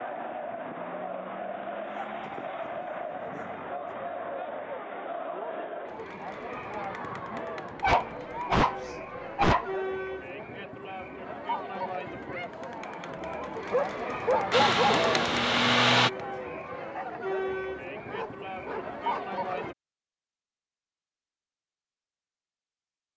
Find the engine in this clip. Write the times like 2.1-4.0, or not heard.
14.5-16.1.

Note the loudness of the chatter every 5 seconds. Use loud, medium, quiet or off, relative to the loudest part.
loud, loud, loud, loud, off.